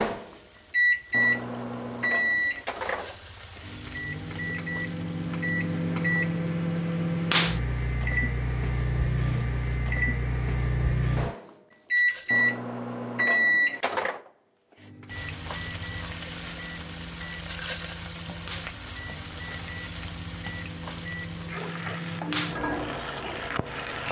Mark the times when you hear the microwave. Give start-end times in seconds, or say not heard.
0.0-24.0.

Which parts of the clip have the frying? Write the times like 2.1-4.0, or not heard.
0.0-9.9, 15.1-24.0.